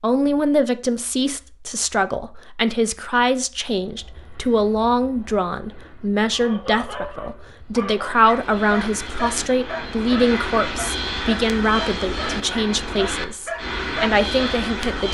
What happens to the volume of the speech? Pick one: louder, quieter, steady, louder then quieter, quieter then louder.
steady.